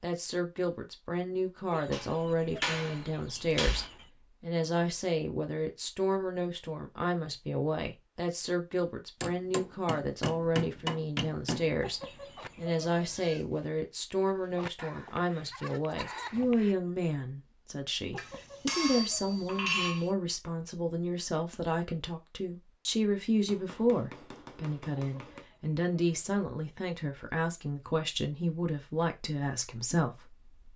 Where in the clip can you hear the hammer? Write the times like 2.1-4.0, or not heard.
1.9-3.9, 9.2-11.8, 18.1-20.1, 23.4-25.4.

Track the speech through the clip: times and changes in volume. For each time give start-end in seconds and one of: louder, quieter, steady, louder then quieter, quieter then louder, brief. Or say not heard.
0.0-30.7 steady.